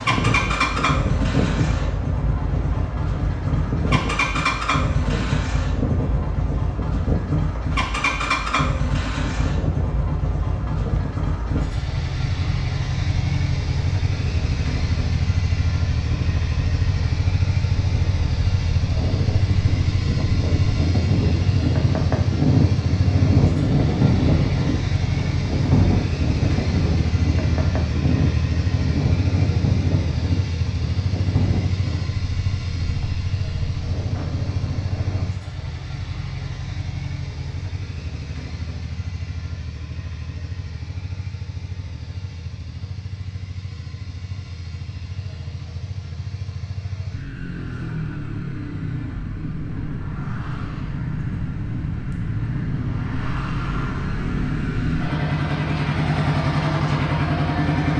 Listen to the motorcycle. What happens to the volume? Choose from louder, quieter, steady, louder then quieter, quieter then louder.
quieter then louder.